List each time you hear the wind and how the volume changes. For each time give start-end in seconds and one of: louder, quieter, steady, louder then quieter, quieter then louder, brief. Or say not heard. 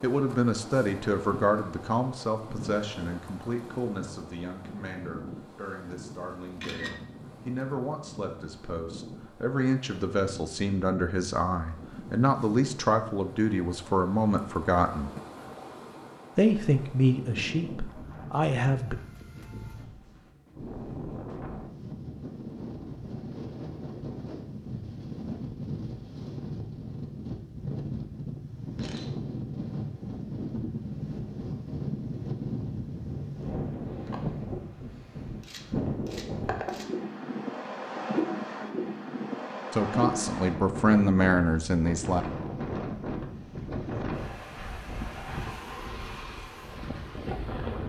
0.0-47.8 louder.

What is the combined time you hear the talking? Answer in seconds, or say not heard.
20 s.